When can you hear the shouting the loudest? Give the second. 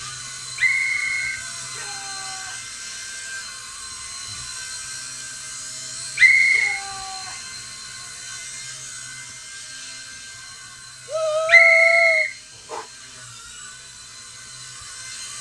12 s.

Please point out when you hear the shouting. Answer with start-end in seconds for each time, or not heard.
1.6-2.8, 6.3-7.5, 11.1-12.2.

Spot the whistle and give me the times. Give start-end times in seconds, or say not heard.
0.6-1.4, 6.2-6.8, 11.4-12.8.